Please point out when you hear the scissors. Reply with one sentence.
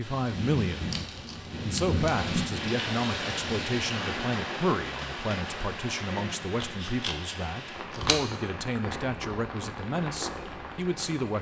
The scissors can be heard from 0.9 to 2.0 s and from 6.6 to 8.2 s.